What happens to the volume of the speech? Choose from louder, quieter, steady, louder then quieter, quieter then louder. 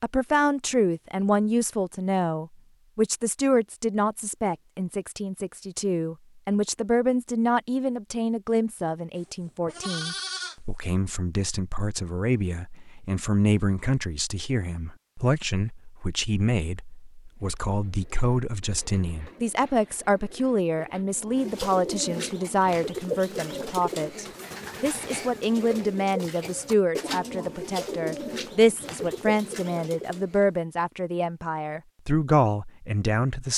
steady.